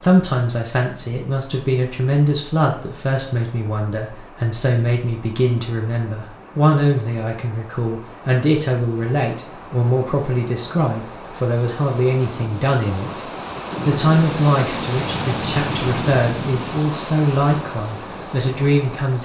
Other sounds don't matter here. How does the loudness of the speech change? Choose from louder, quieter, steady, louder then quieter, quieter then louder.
steady.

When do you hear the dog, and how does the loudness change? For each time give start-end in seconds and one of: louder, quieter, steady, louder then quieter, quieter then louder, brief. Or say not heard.
not heard.